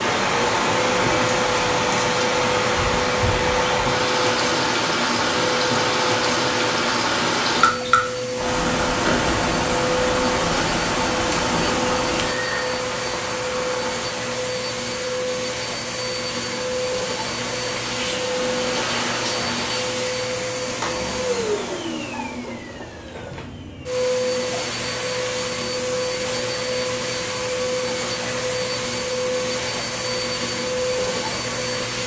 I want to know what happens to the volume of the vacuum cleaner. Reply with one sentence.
The volume of the vacuum cleaner stays about the same.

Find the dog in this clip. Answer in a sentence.
You can't hear the dog here.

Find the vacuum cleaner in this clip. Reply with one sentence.
The vacuum cleaner can be heard from 0.0 to 32.0 s.